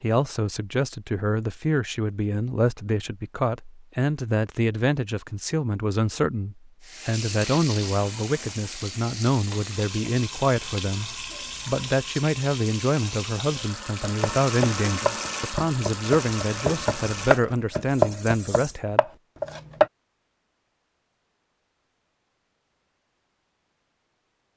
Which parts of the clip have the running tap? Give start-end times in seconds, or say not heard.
6.8-18.8.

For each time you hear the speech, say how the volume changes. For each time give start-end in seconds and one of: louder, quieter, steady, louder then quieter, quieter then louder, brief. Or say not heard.
0.0-19.1 steady.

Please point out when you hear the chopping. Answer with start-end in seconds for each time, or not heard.
14.0-19.9.